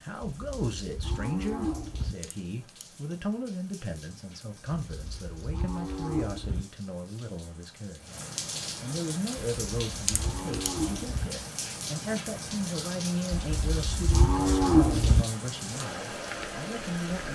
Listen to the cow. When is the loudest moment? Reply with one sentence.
The loudest moment of the cow is at 15 seconds.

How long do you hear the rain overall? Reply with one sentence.
The rain can be heard for 17 seconds in total.